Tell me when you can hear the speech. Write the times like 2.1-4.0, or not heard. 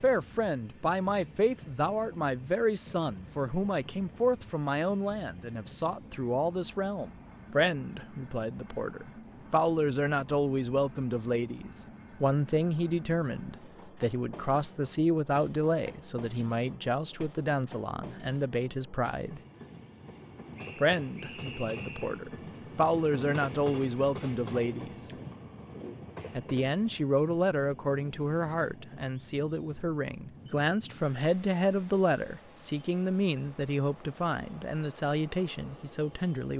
0.0-19.4, 20.8-25.1, 26.3-36.5.